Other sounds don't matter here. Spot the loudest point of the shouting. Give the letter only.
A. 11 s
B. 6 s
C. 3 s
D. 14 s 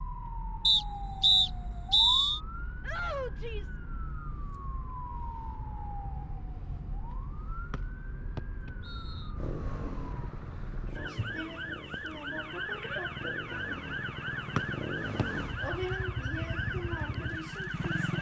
C.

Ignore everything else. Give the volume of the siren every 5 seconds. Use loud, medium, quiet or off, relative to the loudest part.
medium, medium, loud, loud.